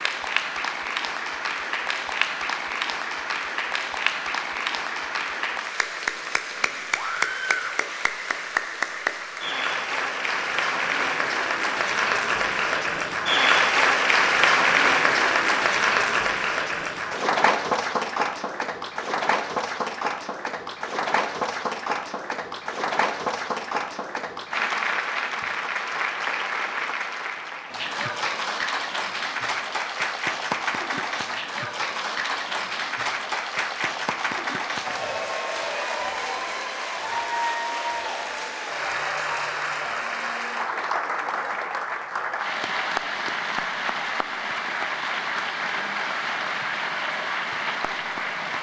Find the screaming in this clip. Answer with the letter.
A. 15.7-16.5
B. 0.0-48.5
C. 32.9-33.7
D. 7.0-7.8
D.